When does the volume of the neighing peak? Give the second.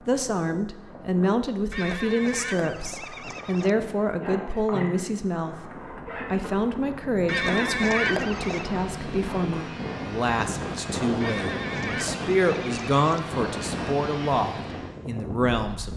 8 s.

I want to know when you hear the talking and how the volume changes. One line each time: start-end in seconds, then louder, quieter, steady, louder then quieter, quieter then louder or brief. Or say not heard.
0.1-15.9 steady.